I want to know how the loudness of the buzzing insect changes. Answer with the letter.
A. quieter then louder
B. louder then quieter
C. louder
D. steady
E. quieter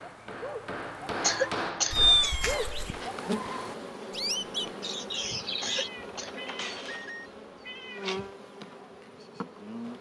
E.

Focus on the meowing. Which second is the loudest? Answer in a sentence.
The volume of the meowing peaks at 2 seconds.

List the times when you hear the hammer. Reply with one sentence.
You can hear the hammer from 0.0 to 3.8 s.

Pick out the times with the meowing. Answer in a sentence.
The meowing can be heard from 1.9 to 3.0 s and from 5.7 to 8.2 s.